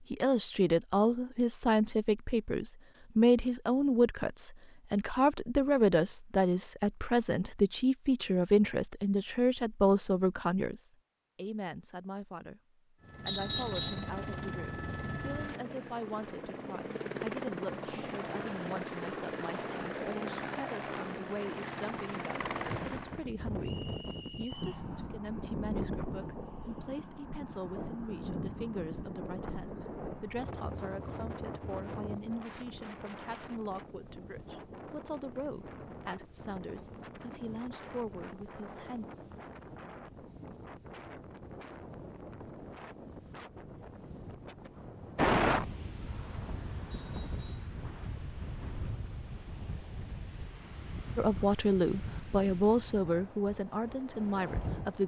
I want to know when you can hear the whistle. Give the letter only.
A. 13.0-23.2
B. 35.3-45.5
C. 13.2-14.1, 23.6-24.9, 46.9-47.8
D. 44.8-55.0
C.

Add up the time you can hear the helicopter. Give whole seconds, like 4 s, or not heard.
10 s.